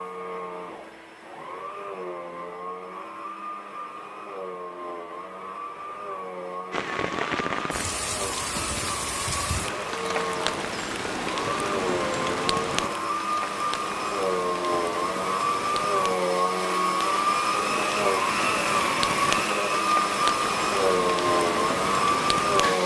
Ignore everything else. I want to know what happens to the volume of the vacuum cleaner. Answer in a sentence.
The loudness of the vacuum cleaner goes up.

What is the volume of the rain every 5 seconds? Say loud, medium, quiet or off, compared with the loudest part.
off, loud, loud, loud, loud.